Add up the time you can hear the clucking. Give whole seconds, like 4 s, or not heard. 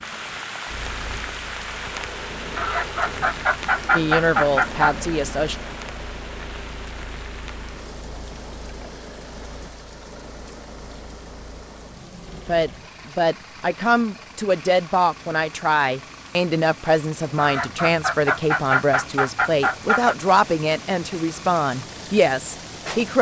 5 s.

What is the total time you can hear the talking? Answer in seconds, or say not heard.
12 s.